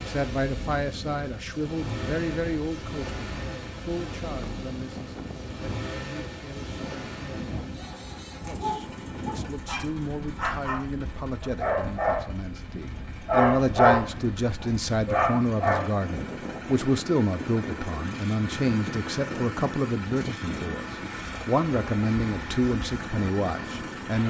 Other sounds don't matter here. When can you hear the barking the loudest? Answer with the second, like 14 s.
14 s.